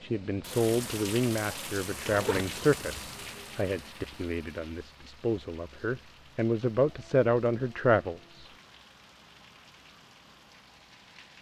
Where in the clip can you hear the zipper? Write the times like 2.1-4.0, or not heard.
2.0-3.4.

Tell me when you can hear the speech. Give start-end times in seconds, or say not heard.
0.0-8.5.